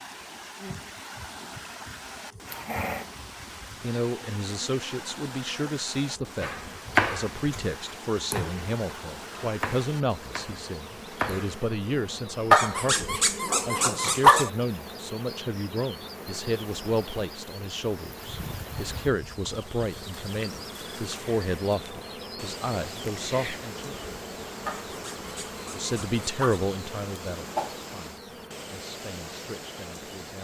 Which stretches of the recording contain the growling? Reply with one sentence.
You can hear the growling from 2.5 to 3.1 s, from 12.5 to 14.5 s and from 24.6 to 26.6 s.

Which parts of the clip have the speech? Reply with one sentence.
You can hear the speech from 3.8 to 23.9 s and from 25.7 to 30.3 s.